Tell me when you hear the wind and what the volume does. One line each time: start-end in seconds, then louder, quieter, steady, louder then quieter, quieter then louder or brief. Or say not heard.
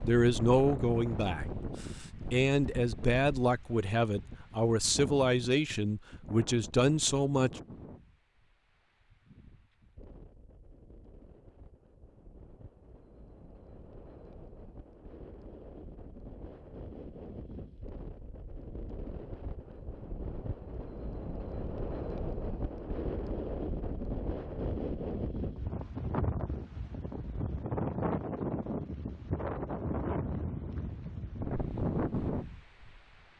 0.0-33.3 quieter then louder.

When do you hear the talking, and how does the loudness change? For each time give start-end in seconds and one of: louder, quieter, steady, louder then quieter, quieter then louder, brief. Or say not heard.
0.1-7.6 steady.